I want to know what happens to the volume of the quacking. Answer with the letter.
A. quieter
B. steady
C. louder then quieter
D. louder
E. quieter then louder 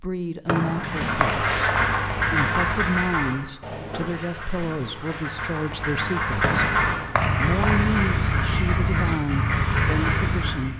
E.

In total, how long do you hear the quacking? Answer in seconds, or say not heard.
10 s.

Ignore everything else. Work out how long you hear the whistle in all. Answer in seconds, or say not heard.
3 s.